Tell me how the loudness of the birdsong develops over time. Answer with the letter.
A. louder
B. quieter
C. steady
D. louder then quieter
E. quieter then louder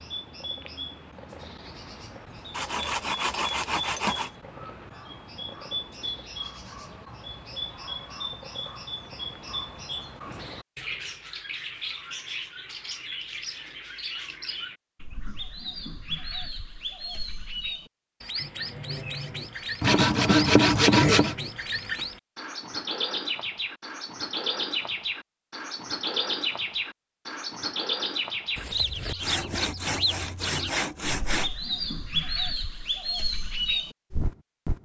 A.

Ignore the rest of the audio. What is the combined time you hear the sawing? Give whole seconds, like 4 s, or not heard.
6 s.